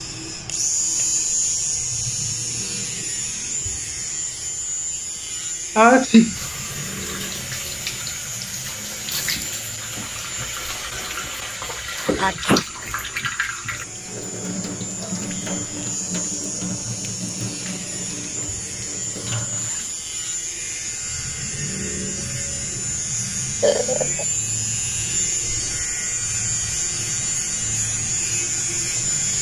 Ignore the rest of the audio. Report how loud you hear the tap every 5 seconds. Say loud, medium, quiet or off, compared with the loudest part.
off, loud, loud, loud, off, off.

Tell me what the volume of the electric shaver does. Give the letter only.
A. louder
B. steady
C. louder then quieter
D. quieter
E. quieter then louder
E.